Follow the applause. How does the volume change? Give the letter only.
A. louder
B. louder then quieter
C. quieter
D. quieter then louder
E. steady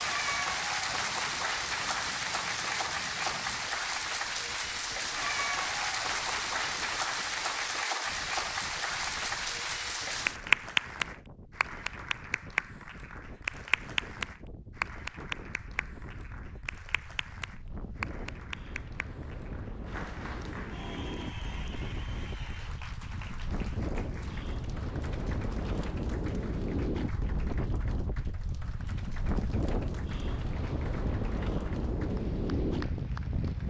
C.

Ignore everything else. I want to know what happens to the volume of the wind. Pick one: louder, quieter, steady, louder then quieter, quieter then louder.
louder.